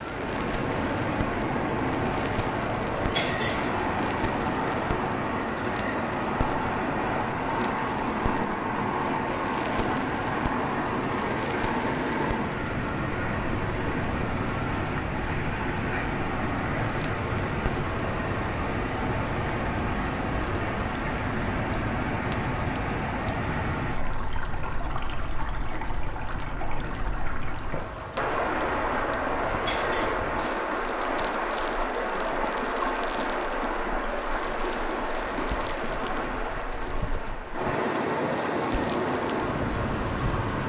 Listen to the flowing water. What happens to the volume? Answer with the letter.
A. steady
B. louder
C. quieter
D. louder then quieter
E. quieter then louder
A.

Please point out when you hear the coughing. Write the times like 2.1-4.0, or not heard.
3.0-3.8, 29.5-30.1.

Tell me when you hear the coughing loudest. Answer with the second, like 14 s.
3 s.